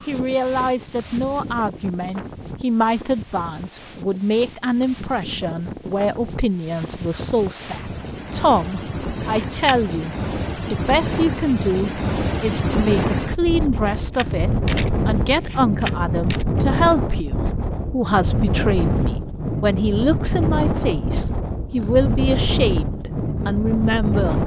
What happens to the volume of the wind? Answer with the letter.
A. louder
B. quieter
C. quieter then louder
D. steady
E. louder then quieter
A.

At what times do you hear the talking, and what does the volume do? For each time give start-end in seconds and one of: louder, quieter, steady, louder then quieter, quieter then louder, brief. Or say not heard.
0.1-24.4 steady.